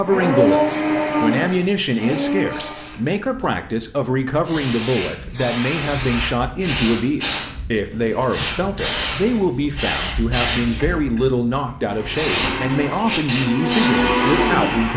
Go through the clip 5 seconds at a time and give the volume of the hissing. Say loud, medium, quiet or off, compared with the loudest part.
medium, loud, loud.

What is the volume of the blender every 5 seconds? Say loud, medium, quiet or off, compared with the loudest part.
loud, off, loud.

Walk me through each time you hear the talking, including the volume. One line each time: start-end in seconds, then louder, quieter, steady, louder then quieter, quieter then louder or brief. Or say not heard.
0.0-14.9 steady.